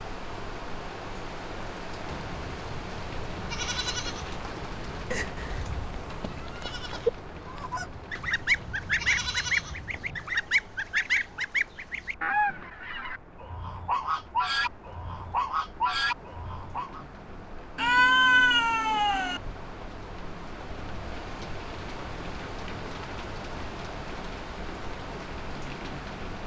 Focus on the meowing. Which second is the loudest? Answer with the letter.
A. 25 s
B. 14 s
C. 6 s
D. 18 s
D.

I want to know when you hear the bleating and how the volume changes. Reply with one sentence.
You can hear the bleating from 2.0 to 10.3 s, getting quieter then louder.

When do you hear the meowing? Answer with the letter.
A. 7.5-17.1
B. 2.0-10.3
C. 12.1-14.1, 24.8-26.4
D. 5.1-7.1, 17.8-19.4
D.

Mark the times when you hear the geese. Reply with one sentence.
The geese can be heard from 7.5 to 17.1 s.